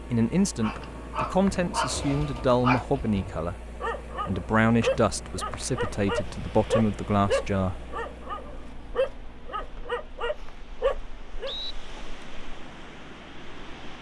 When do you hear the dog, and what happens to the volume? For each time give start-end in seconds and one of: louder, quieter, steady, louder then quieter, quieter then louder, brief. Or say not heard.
0.6-11.6 steady.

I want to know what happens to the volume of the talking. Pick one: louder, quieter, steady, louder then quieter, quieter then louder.
steady.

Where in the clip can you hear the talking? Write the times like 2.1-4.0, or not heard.
0.1-7.8.